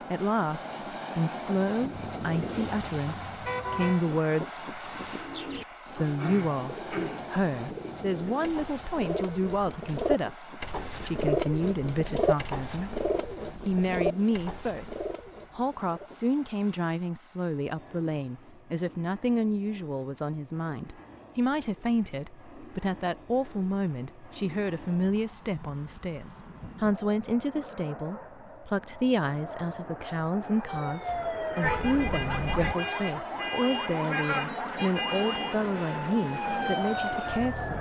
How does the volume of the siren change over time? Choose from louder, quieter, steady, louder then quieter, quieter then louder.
steady.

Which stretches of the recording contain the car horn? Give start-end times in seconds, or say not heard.
1.9-4.0, 31.6-32.8.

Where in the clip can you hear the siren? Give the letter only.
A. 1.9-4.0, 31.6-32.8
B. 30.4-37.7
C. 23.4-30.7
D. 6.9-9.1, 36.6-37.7
B.